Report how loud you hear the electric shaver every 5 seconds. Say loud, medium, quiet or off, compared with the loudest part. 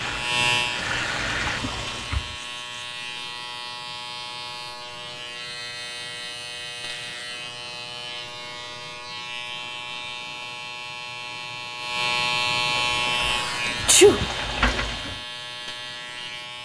loud, medium, loud, medium.